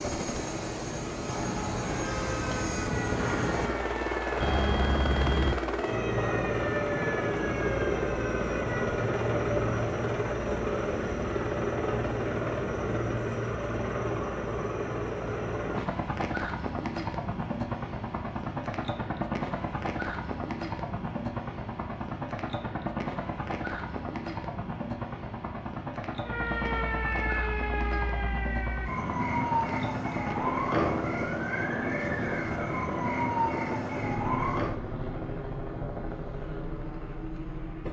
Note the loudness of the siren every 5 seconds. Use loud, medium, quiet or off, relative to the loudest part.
medium, medium, off, off, off, loud, loud, off.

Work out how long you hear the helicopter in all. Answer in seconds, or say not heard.
38 s.